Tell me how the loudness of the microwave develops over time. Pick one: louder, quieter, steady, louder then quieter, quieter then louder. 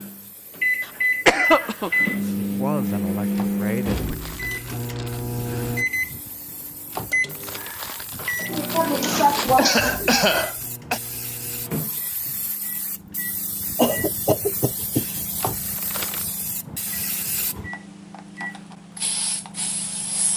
quieter.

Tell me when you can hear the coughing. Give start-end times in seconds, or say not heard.
0.8-2.1, 8.4-11.0, 13.8-15.1.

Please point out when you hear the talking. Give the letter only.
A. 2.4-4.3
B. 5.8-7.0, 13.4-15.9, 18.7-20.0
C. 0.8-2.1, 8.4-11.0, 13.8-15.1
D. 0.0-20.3
A.